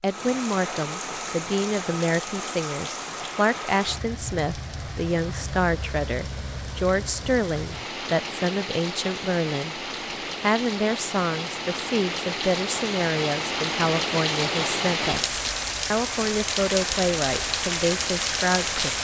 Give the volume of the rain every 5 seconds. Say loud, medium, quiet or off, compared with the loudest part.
medium, medium, loud, loud.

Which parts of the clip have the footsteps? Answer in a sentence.
The footsteps can't be heard in this clip.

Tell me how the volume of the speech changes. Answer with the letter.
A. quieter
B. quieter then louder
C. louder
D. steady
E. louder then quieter
D.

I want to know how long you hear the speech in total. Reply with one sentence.
You can hear the speech for 18 seconds altogether.